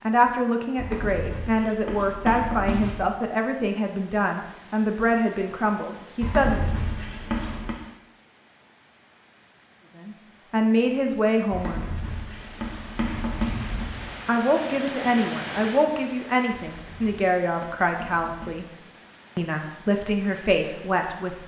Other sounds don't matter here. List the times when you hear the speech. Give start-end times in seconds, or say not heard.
0.0-6.7, 9.9-11.8, 14.2-18.7, 19.4-21.4.